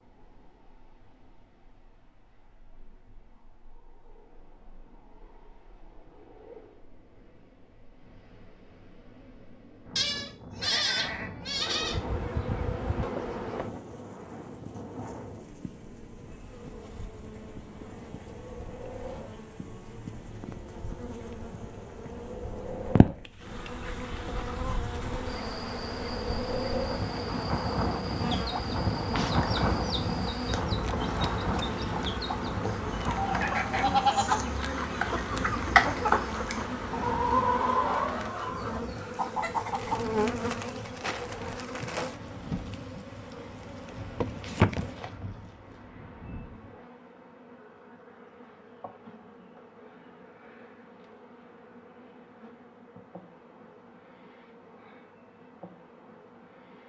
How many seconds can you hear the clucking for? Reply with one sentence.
You can hear the clucking for 12 seconds altogether.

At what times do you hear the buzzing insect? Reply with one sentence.
The buzzing insect can be heard from 11.4 to 56.8 s.